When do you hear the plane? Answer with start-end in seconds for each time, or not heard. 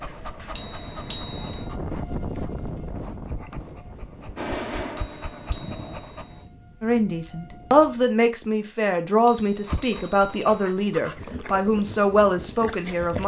4.3-6.0.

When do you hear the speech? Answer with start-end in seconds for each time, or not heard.
6.8-13.2.